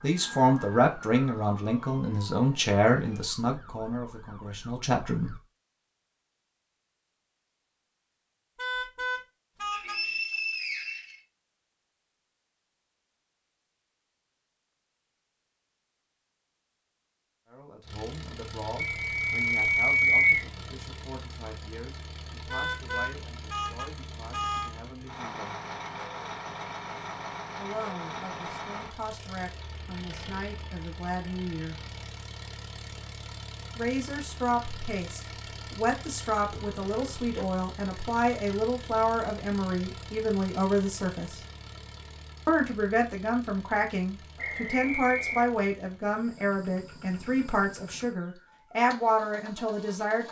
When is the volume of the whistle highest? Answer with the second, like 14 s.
20 s.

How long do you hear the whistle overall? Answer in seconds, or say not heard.
4 s.